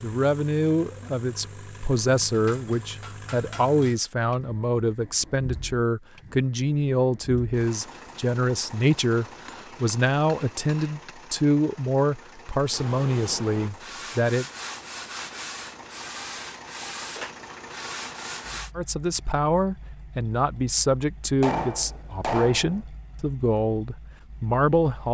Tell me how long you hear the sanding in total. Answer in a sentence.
The sanding can be heard for 6 seconds in total.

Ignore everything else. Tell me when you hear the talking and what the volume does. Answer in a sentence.
You can hear the talking from 0.0 to 14.4 s, at a steady volume; and from 18.8 to 25.0 s, at a steady volume.